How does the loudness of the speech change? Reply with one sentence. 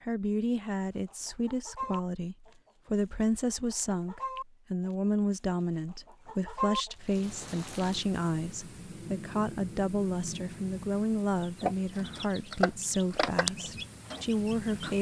The loudness of the speech stays about the same.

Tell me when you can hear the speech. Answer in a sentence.
You can hear the speech from 0.0 to 14.9 s.